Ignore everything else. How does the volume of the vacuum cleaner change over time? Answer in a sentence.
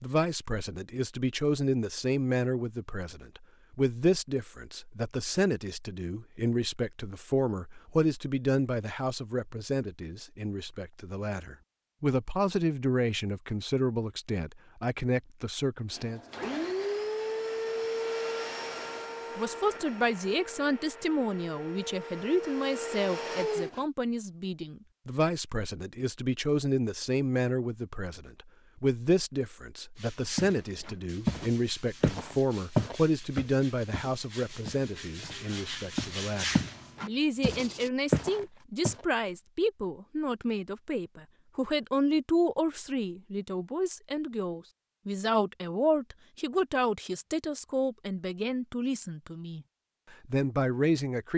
The volume of the vacuum cleaner goes down, then up.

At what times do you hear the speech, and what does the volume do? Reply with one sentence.
The speech can be heard from 0.0 to 16.2 s, at a steady volume; and from 19.4 to 51.3 s, at a steady volume.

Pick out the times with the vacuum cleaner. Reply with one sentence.
The vacuum cleaner can be heard from 15.9 to 23.9 s.